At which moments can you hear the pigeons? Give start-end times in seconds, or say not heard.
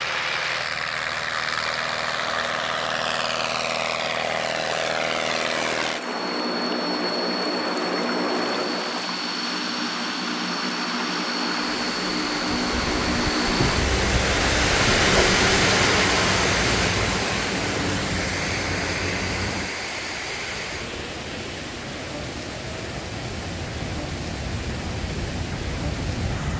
not heard.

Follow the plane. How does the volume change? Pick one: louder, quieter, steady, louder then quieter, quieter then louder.
quieter.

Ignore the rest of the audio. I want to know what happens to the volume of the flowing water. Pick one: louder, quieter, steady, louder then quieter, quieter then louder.
louder then quieter.